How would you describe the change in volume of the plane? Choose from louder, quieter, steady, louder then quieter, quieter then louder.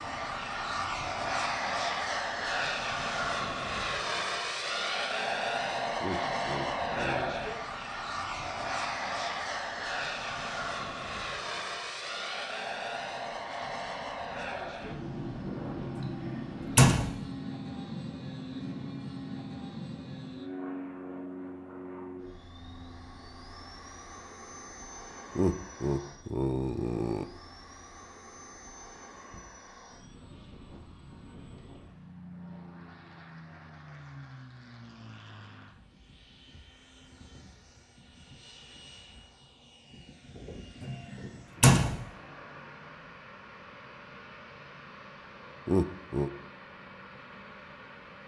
quieter.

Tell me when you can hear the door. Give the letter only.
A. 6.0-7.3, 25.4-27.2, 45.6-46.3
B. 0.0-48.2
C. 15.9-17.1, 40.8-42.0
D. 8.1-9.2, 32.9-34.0
C.